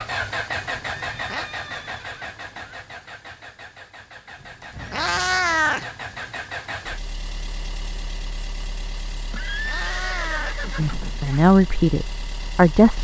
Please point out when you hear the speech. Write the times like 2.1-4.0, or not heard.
10.8-13.0.